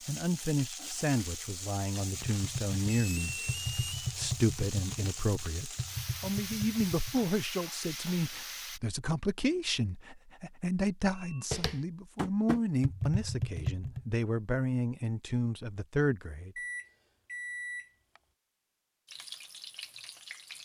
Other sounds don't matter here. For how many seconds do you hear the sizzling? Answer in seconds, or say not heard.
10 s.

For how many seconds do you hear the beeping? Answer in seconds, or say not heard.
3 s.